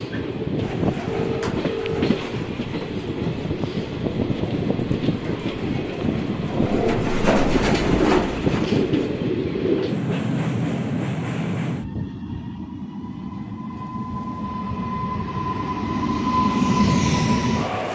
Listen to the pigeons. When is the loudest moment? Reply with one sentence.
The volume of the pigeons peaks at 7 seconds.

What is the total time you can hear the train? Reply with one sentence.
The train can be heard for 18 seconds in total.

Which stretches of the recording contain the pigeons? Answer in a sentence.
The pigeons can be heard from 0.6 to 9.2 s.